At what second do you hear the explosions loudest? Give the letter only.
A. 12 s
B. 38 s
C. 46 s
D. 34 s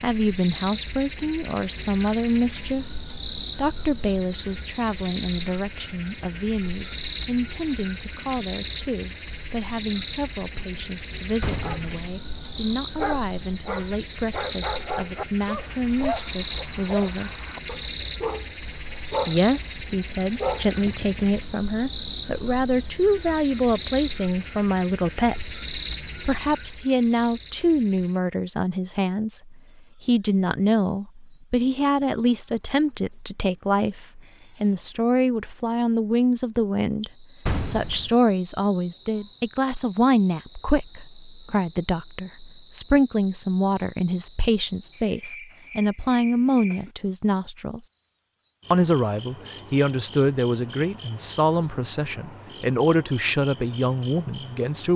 B.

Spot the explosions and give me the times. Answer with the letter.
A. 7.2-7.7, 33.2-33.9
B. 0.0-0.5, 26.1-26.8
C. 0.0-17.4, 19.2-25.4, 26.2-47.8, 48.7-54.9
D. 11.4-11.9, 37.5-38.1
D.